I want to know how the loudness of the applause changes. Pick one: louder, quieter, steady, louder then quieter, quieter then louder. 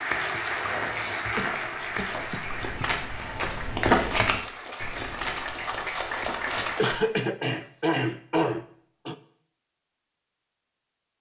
quieter then louder.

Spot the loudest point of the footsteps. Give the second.
4 s.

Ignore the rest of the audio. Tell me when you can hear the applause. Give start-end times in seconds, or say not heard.
0.0-7.0.